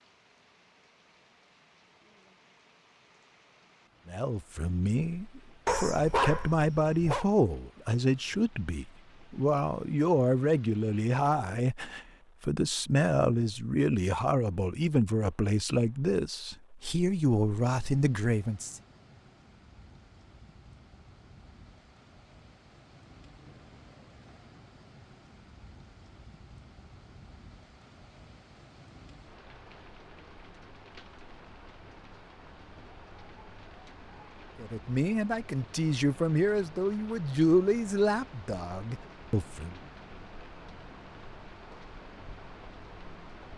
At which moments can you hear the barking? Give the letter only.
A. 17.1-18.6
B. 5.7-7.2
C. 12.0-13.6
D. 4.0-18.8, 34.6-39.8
B.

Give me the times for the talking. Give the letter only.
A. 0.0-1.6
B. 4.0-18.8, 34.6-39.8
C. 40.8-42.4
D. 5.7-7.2
B.